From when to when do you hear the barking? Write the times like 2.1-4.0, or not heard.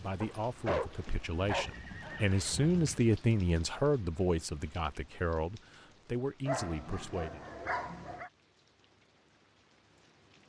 0.2-1.8, 6.5-8.3.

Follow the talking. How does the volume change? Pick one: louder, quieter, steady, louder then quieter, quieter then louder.
louder then quieter.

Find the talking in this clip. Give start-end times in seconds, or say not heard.
0.0-7.4.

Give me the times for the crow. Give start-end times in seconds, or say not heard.
not heard.